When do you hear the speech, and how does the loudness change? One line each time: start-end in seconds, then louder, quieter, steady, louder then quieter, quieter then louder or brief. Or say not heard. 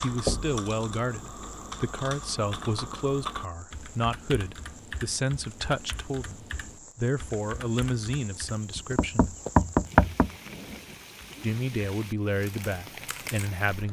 0.0-9.3 steady
11.4-13.8 brief.